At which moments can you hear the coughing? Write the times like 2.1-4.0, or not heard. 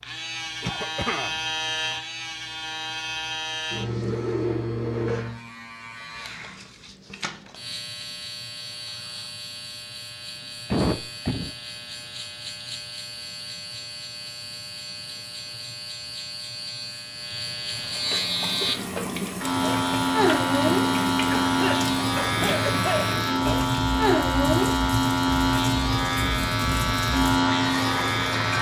0.6-1.4, 10.7-11.5, 21.2-23.6.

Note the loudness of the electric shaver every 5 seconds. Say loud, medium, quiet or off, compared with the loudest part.
medium, quiet, quiet, medium, loud, loud.